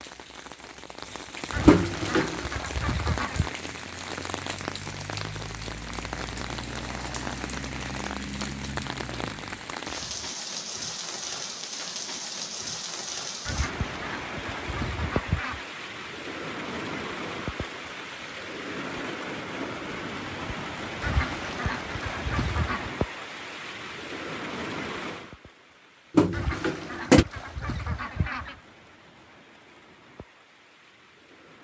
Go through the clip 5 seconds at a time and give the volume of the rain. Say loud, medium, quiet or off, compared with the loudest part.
loud, loud, loud, loud, loud, quiet, quiet.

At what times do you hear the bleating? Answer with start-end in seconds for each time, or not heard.
not heard.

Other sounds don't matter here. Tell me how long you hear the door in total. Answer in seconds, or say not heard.
2 s.